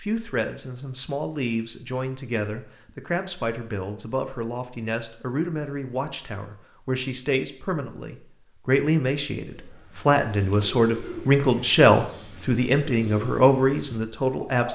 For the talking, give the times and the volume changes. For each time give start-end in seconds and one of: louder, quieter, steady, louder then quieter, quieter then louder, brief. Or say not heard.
0.0-14.7 louder.